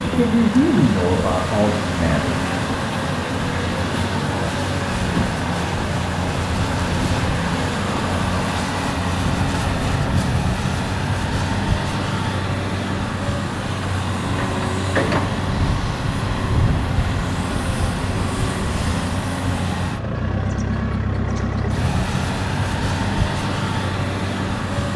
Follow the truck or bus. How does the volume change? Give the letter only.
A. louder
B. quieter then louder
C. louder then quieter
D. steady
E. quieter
D.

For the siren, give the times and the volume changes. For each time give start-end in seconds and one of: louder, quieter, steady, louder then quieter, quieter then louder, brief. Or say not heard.
not heard.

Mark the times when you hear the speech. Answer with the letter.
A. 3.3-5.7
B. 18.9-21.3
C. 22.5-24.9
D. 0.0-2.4
D.